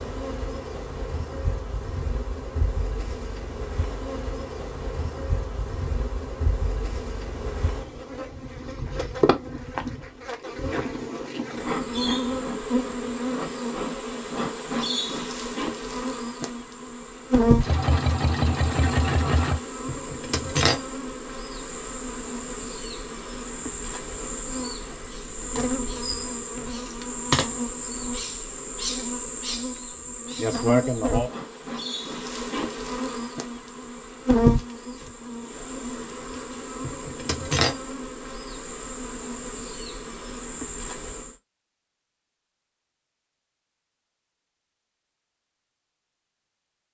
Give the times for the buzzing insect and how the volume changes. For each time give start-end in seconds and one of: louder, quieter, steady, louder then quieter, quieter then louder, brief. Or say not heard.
0.0-41.4 louder.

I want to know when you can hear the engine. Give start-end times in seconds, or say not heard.
17.6-19.6.